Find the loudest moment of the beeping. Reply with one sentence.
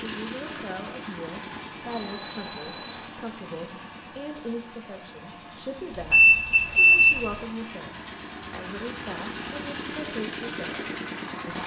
The volume of the beeping peaks at 7 seconds.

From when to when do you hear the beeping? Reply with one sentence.
The beeping can be heard from 1.9 to 3.1 s and from 5.9 to 7.3 s.